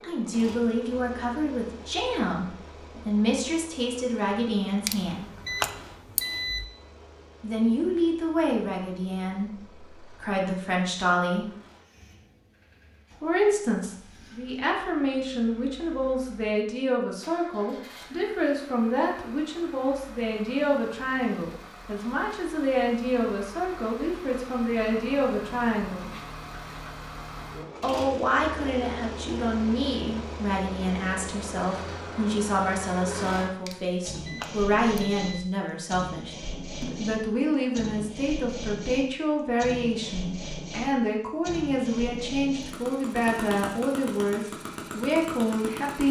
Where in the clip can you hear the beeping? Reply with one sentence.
The beeping can be heard from 4.8 to 6.7 s and from 33.6 to 35.5 s.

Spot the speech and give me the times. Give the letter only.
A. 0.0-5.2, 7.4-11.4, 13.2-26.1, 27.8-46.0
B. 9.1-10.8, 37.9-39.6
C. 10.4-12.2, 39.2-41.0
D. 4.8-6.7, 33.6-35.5
A.